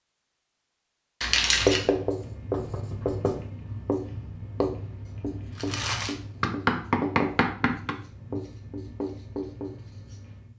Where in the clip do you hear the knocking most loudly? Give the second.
7 s.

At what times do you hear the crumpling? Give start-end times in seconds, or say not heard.
1.2-1.9, 5.5-6.2.